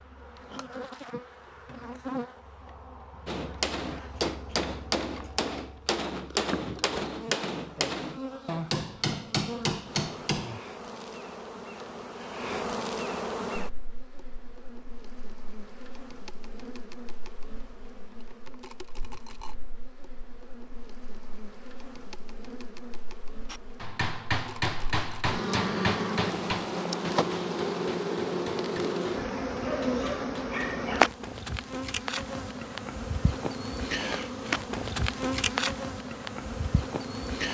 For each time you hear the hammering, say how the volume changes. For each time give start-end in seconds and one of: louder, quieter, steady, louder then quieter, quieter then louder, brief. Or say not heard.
3.2-10.6 steady
23.4-30.9 quieter.